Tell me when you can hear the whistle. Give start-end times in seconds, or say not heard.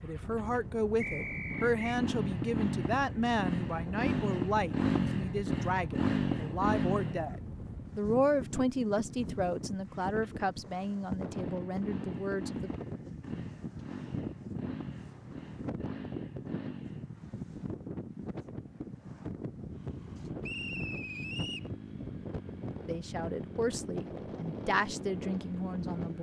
1.0-2.0, 20.4-21.7.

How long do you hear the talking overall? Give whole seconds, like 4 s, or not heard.
16 s.